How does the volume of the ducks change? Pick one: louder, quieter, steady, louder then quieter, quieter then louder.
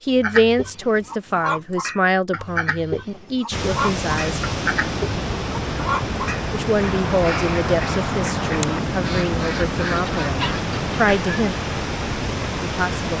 steady.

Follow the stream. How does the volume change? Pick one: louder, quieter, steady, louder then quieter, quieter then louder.
steady.